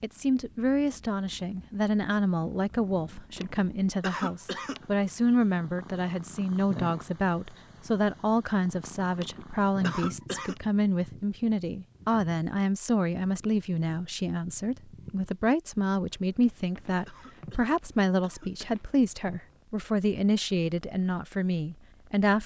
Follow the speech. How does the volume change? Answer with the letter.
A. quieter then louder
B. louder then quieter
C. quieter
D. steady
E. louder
D.